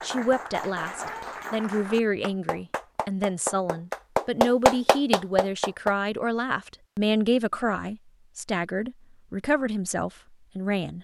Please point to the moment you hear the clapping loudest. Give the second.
5 s.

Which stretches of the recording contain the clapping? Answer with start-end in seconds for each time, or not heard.
0.0-6.0.